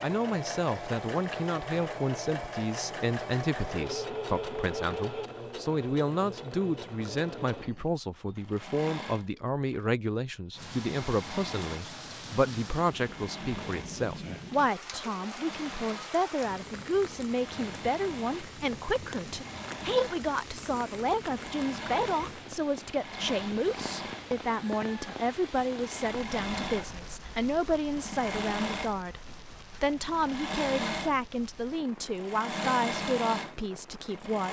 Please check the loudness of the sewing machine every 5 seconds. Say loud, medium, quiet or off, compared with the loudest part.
loud, medium, medium, medium, medium, loud, loud.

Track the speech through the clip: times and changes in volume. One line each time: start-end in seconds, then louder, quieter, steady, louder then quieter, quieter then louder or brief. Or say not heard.
0.0-34.4 steady.